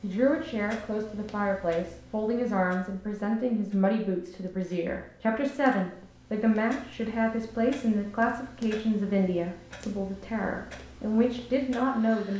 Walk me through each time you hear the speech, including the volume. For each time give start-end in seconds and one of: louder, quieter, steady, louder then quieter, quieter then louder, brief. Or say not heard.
0.0-12.3 steady.